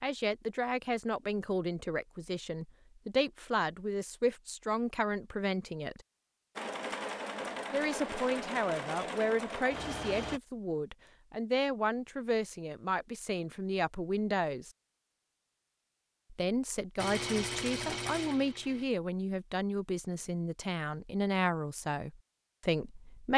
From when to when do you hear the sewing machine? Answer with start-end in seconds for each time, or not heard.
6.5-10.4, 16.9-18.9.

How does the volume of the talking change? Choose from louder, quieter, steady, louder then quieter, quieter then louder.
steady.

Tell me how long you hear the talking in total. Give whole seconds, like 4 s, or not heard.
20 s.